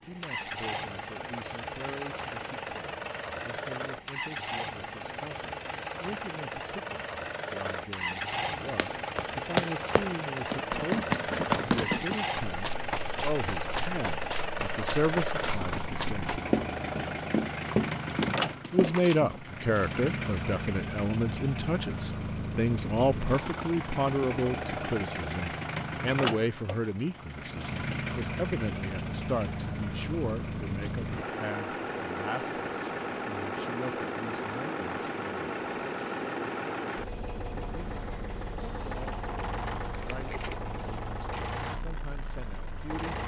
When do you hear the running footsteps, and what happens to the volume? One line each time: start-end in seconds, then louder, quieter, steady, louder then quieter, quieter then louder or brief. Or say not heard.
8.7-19.4 quieter then louder.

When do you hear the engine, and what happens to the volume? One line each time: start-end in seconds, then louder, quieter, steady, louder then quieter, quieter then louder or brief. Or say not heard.
0.0-43.2 steady.